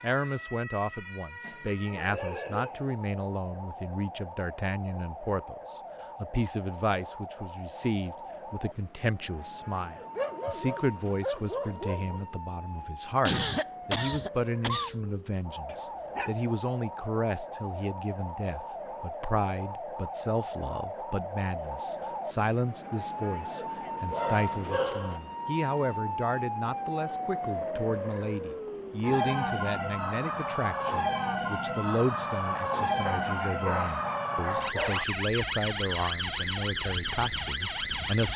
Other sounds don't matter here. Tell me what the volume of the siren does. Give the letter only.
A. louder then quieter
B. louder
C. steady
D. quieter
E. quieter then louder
B.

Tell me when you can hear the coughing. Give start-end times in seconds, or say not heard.
13.2-14.9.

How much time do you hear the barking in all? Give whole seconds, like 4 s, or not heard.
7 s.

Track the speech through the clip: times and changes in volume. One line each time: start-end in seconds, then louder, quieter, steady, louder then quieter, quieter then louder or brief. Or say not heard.
0.0-38.3 steady.